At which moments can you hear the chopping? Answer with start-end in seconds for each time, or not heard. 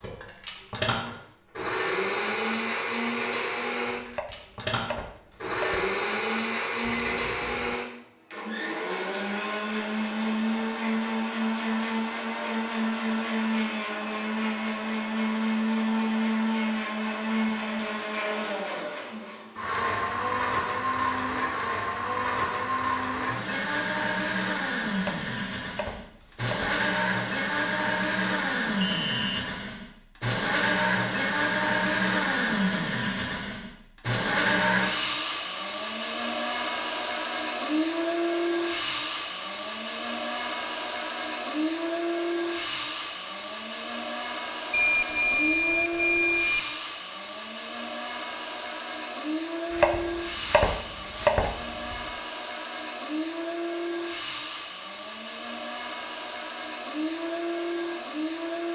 4.0-5.9, 24.9-26.8, 49.7-52.0.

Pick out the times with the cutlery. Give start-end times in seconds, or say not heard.
not heard.